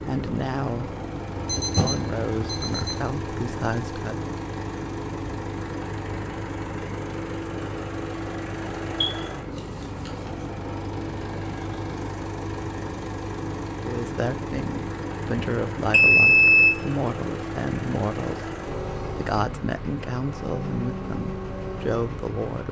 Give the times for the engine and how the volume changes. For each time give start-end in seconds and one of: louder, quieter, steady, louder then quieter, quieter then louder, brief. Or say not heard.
0.0-22.6 steady.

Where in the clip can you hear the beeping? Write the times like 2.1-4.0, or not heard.
1.4-3.1, 9.0-10.1, 15.9-16.8.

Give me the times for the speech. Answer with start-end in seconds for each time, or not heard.
0.1-4.3, 13.8-22.6.